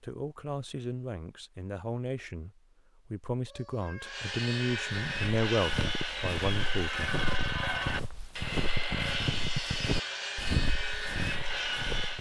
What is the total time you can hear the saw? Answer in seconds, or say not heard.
8 s.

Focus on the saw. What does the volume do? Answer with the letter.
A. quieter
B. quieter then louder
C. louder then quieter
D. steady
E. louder
D.